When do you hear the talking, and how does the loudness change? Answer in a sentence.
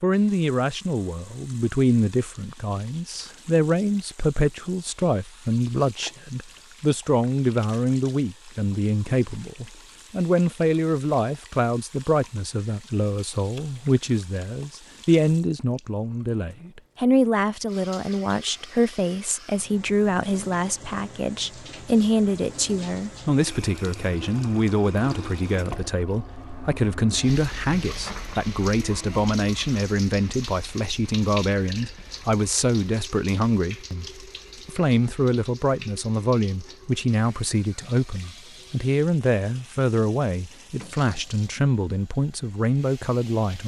The talking can be heard from 0.0 to 34.0 s, at a steady volume; and from 34.6 to 43.6 s, at a steady volume.